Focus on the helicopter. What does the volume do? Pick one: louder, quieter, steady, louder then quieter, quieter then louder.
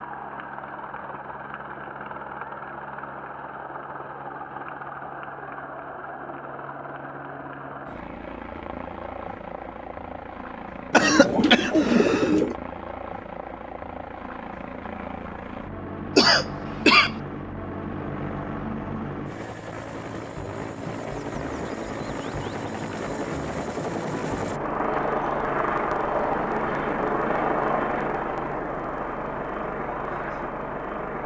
louder.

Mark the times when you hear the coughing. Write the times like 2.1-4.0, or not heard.
10.9-12.6, 16.1-17.1.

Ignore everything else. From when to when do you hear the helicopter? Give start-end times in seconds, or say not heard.
0.0-31.2.